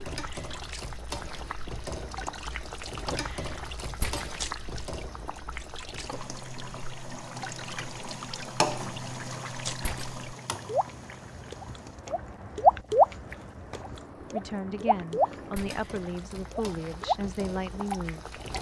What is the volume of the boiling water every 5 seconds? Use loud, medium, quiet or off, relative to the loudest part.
loud, loud, medium, medium.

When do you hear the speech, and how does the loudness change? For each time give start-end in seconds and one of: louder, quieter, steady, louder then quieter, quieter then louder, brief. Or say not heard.
14.2-18.4 steady.